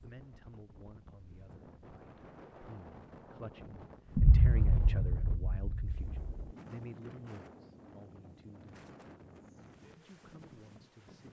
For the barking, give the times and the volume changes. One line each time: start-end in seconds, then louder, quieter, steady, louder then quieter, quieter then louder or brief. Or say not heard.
not heard.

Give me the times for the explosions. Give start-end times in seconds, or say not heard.
4.2-6.3.